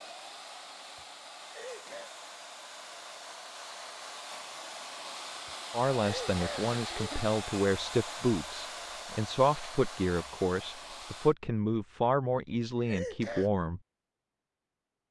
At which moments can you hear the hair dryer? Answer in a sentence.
You can hear the hair dryer from 0.0 to 11.3 s.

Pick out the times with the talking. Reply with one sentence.
You can hear the talking from 5.7 to 13.8 s.